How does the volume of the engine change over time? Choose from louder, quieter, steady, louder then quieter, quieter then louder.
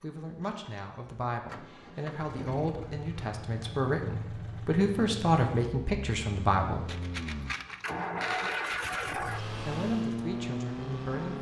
louder.